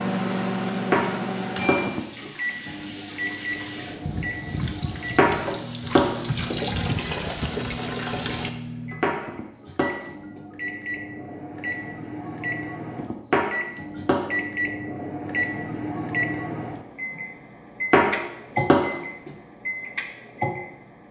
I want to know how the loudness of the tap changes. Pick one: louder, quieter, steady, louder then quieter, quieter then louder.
louder.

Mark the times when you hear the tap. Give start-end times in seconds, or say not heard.
0.0-8.5.